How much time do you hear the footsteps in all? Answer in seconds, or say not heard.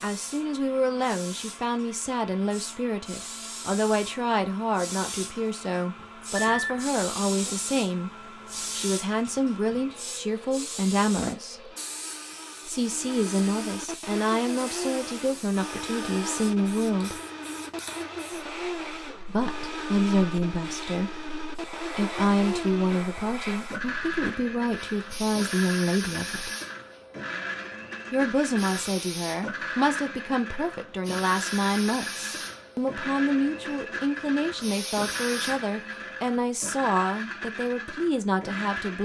not heard.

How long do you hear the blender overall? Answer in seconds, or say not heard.
39 s.